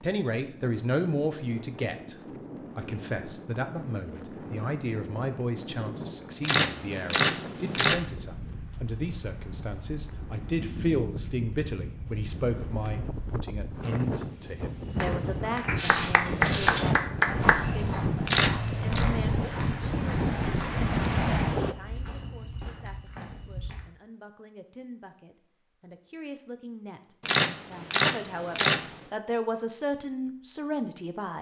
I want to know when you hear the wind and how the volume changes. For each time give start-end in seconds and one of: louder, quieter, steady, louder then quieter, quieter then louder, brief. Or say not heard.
0.0-21.8 louder.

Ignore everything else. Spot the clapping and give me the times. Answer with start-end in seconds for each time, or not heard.
15.7-17.6.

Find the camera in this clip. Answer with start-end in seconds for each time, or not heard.
6.4-8.0, 18.2-19.1, 27.2-29.0.